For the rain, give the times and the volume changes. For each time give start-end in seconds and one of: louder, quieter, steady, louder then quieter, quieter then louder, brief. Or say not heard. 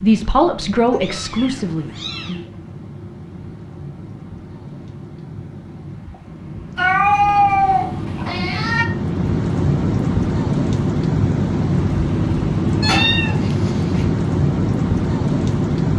0.0-15.9 louder.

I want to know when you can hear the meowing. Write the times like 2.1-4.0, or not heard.
0.9-2.4, 6.8-8.8, 12.8-14.0.